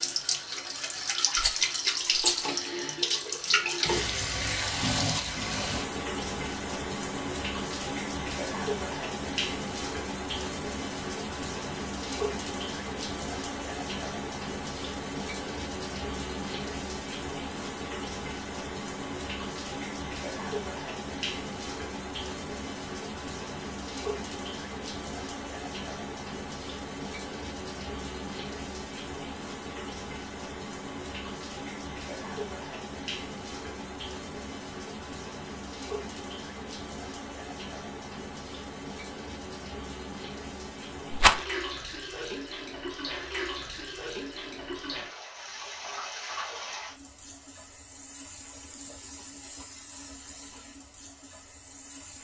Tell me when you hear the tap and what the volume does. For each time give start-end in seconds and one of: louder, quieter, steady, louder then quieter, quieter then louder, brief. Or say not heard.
0.0-52.1 quieter.